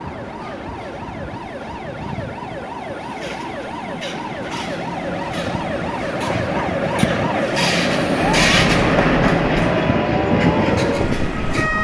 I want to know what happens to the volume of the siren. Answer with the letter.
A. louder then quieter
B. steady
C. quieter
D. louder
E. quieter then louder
D.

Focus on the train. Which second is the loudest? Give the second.
9 s.